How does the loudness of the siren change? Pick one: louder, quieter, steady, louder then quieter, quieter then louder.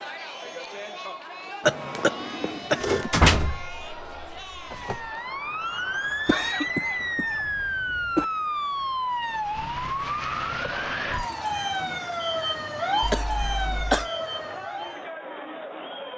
steady.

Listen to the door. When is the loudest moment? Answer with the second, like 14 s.
3 s.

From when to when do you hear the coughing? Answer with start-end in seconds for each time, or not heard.
1.6-3.1, 6.2-8.2, 13.0-14.1.